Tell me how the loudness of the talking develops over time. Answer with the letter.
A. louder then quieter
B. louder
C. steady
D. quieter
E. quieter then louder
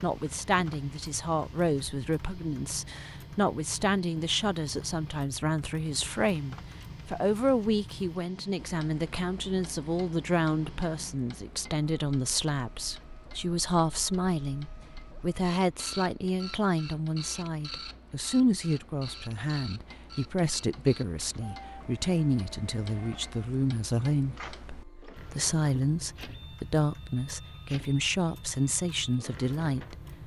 C.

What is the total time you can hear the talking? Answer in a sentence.
You can hear the talking for 30 seconds altogether.